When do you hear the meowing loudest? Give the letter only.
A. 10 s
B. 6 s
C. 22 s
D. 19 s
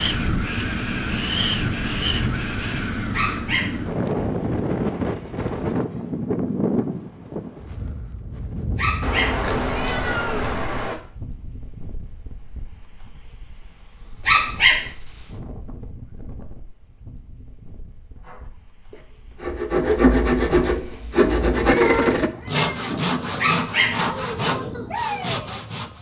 C.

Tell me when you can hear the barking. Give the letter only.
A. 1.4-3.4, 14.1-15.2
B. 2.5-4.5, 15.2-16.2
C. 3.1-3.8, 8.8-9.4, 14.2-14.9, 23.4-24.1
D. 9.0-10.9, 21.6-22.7
C.